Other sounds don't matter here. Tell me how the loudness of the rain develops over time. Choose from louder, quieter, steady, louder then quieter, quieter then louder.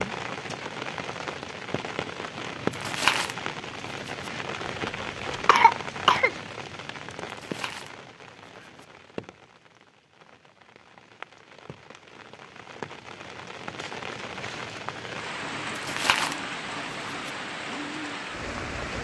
quieter then louder.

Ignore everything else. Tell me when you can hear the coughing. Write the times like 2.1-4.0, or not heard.
4.7-6.3.